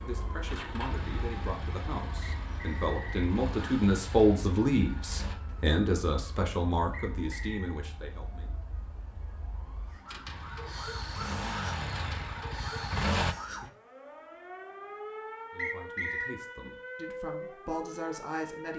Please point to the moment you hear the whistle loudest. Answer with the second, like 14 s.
16 s.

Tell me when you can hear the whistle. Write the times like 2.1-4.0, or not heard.
2.2-3.2, 6.9-7.8, 15.6-16.4.